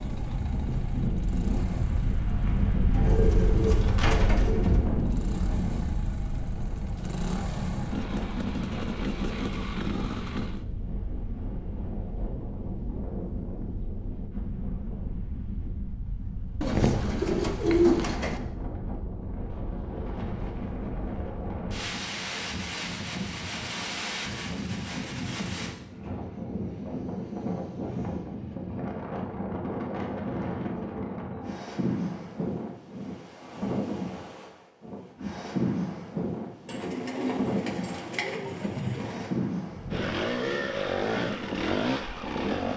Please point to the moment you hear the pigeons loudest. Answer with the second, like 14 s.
18 s.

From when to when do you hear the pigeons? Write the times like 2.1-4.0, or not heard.
2.9-4.8, 16.6-18.4, 36.6-39.3.